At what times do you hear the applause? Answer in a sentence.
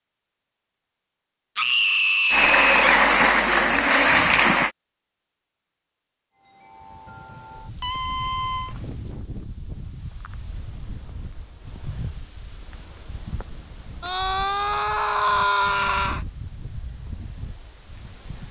The applause can be heard from 2.3 to 4.7 s.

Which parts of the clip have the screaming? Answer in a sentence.
You can hear the screaming from 1.6 to 3.0 s, from 7.8 to 8.8 s and from 14.0 to 16.2 s.